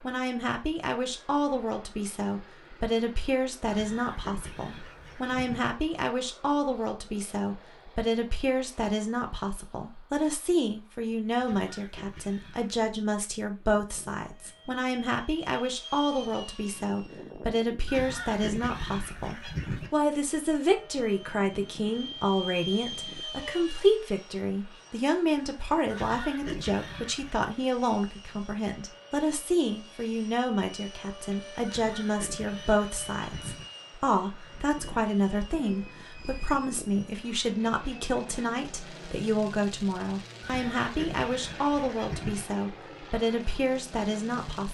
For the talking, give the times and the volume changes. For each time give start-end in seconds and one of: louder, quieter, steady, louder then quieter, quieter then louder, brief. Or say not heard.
0.0-44.7 steady.